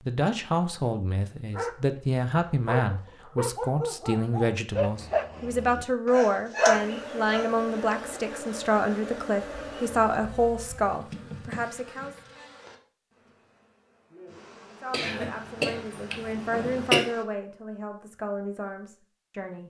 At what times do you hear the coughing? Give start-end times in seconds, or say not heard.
14.9-17.1.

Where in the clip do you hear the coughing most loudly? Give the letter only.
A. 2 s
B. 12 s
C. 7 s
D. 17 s
D.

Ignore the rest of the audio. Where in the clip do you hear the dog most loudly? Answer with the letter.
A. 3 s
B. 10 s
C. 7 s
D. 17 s
C.